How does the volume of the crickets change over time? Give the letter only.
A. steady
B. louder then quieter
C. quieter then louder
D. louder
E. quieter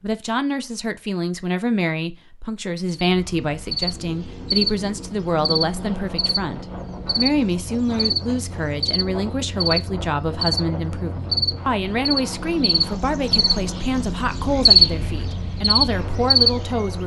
D.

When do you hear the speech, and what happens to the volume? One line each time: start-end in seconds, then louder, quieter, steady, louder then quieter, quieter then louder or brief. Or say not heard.
0.0-17.0 steady.